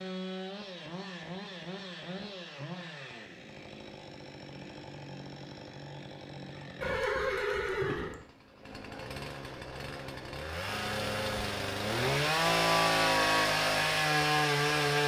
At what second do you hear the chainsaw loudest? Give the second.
13 s.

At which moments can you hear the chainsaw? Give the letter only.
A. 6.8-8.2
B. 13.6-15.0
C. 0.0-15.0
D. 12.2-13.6
C.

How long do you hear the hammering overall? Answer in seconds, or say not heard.
not heard.